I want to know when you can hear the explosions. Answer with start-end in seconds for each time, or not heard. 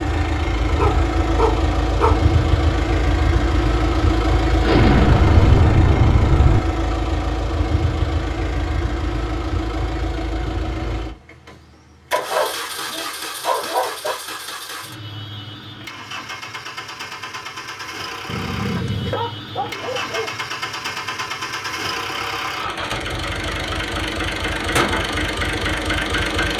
4.6-6.6.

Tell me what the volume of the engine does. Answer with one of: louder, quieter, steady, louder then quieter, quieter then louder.
quieter then louder.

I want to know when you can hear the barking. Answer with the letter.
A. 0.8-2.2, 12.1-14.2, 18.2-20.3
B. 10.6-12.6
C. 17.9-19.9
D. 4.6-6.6
A.